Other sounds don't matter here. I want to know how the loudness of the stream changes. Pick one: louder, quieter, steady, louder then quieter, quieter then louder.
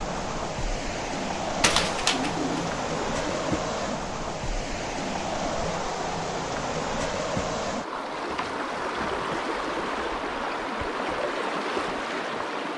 steady.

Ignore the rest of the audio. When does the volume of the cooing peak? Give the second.
2 s.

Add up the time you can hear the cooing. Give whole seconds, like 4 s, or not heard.
2 s.